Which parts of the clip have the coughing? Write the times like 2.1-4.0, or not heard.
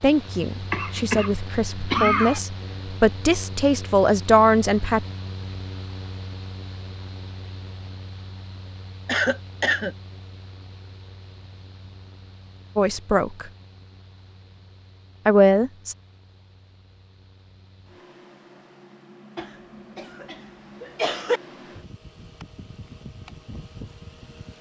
0.7-2.4, 9.1-9.9, 19.4-21.4.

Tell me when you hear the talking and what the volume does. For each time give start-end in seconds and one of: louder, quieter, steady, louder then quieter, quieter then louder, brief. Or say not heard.
0.0-5.0 louder
12.8-13.5 brief
15.2-15.9 brief.